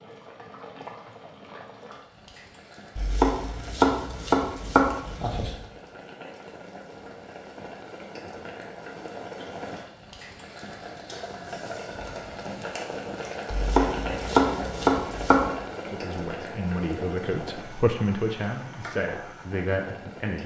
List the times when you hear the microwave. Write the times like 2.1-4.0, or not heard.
not heard.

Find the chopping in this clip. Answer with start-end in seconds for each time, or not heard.
3.0-5.5, 13.5-15.4.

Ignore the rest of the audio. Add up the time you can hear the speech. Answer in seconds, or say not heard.
5 s.